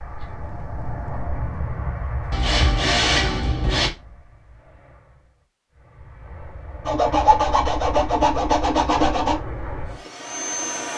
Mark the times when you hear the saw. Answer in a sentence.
You can hear the saw from 2.3 to 3.9 s and from 6.8 to 9.3 s.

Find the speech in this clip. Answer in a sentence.
The speech can't be heard in this clip.